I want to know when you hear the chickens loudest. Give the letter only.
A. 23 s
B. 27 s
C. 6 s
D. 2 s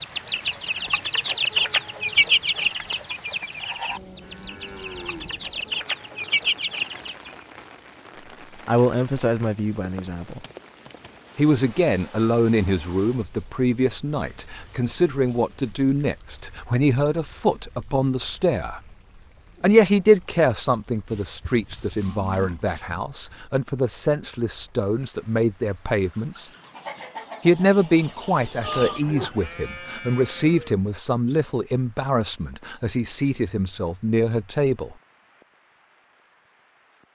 D.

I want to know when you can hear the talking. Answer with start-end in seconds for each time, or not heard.
8.7-10.4, 11.3-18.8, 19.6-26.5, 27.4-35.0.